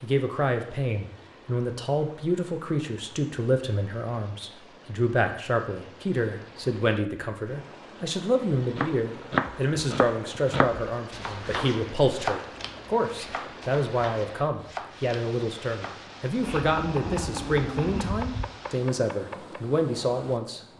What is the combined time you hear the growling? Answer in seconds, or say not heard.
2 s.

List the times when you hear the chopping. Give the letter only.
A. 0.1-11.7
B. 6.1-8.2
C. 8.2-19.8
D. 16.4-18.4
C.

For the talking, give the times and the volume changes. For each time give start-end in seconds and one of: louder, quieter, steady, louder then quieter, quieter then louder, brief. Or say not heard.
0.0-20.6 steady.